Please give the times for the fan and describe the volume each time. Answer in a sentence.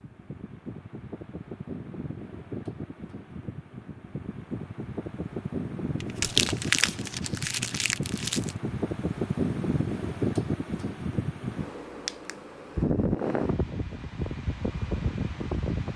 The fan can be heard from 0.0 to 15.9 s, getting louder.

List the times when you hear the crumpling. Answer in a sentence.
You can hear the crumpling from 6.0 to 8.6 s.